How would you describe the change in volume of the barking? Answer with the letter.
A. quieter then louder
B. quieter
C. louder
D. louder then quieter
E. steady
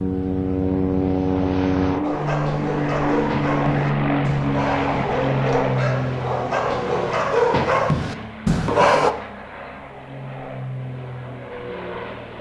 C.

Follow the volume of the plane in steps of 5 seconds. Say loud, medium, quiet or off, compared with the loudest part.
loud, medium, medium.